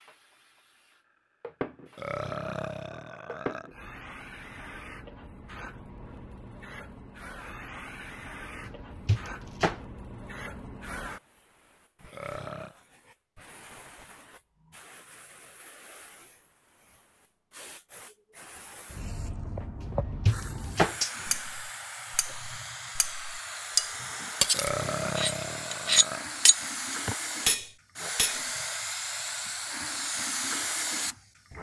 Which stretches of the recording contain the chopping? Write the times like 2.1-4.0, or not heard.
8.7-9.8, 20.2-20.9.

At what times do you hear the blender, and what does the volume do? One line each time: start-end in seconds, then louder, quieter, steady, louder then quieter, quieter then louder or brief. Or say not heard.
not heard.